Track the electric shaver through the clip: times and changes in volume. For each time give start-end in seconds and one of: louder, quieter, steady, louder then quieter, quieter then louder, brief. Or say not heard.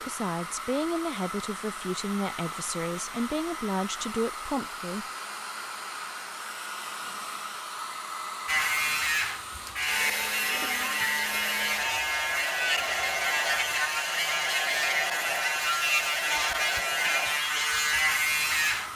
8.4-18.9 steady.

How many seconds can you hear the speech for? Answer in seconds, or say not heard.
5 s.